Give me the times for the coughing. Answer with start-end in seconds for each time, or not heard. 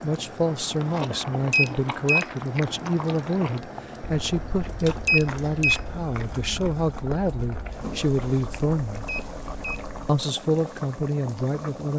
not heard.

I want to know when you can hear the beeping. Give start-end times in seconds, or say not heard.
1.5-2.2, 5.0-5.8, 9.1-9.8.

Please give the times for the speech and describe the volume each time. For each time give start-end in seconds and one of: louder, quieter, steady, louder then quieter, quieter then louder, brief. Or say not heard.
0.0-9.1 steady
10.1-11.9 brief.